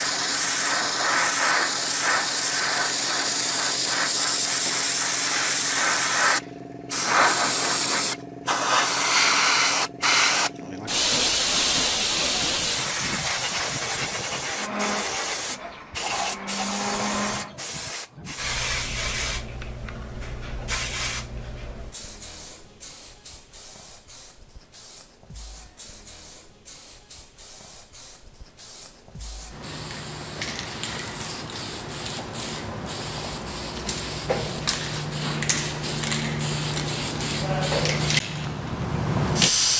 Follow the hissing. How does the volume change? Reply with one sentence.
The volume of the hissing goes down, then up.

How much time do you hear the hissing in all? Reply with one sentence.
The hissing can be heard for 40 seconds in total.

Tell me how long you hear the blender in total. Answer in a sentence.
You can hear the blender for 3 seconds altogether.